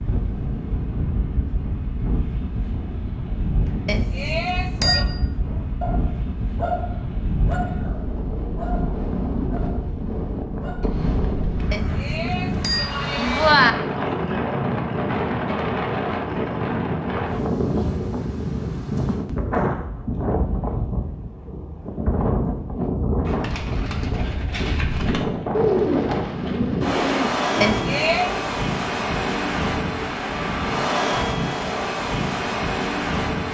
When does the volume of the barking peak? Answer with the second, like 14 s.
7 s.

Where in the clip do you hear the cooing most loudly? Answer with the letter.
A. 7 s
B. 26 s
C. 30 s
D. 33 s
B.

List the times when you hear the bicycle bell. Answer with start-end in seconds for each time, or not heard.
3.9-5.1, 11.7-13.7, 27.6-28.4.